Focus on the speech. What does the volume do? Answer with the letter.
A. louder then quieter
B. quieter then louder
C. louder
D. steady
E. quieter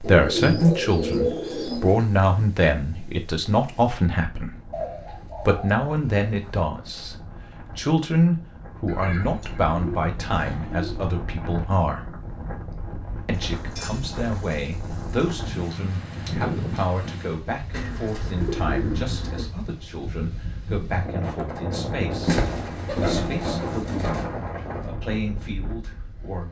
E.